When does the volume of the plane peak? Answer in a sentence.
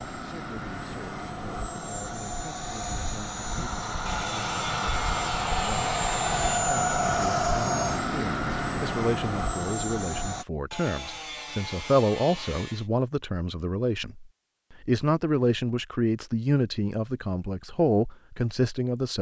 The loudest moment of the plane is at 7 seconds.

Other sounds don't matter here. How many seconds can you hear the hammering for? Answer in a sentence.
You can't hear the hammering here.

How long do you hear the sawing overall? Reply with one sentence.
The sawing can be heard for 5 seconds in total.